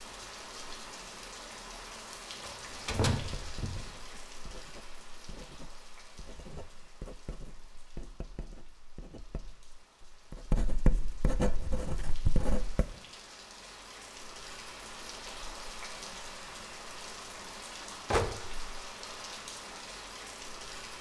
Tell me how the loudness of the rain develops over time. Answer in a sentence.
The volume of the rain goes down, then up.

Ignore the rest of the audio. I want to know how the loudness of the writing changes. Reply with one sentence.
The volume of the writing goes up.